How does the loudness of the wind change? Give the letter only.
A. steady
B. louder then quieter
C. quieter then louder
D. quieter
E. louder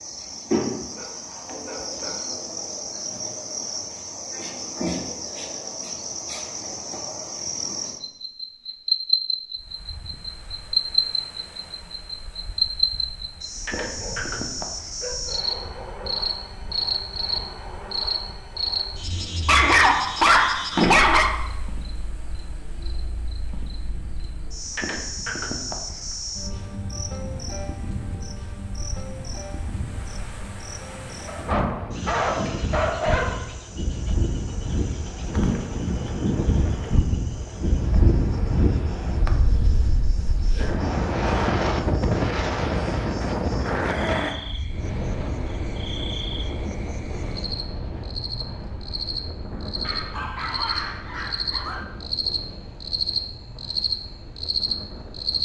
B.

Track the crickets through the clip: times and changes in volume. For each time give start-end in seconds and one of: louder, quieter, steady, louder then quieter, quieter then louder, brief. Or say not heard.
0.0-55.4 quieter then louder.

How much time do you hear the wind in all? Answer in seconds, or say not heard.
46 s.